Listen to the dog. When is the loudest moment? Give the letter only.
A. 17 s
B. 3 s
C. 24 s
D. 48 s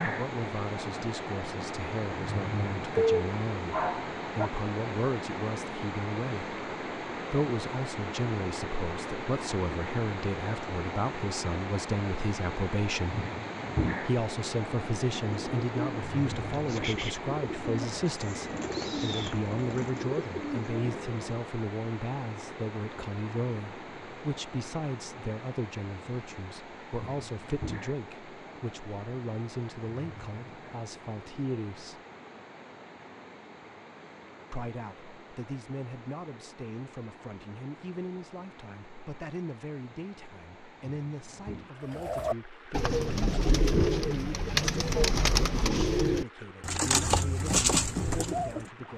B.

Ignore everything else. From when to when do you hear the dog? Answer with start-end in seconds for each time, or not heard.
3.0-4.5.